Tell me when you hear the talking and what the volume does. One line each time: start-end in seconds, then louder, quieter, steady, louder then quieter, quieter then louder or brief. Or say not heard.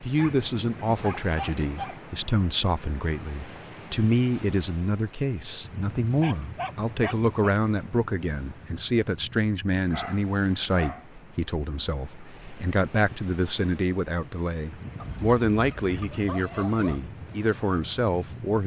0.0-18.6 steady.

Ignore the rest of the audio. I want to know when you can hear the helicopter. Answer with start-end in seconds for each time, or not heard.
not heard.